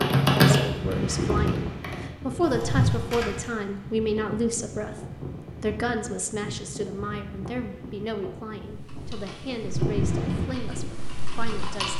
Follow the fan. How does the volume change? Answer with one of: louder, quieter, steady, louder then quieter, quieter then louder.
quieter then louder.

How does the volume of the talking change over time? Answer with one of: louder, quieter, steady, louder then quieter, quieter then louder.
quieter.